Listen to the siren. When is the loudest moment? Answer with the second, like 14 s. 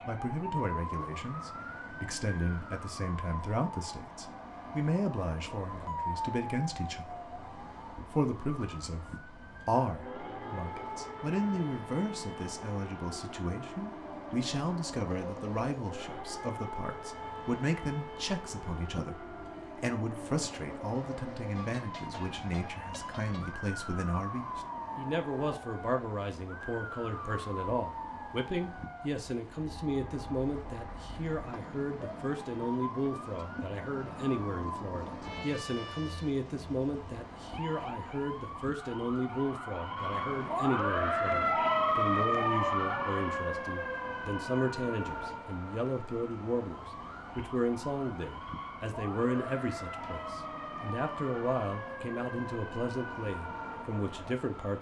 42 s.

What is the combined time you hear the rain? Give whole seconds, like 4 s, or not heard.
not heard.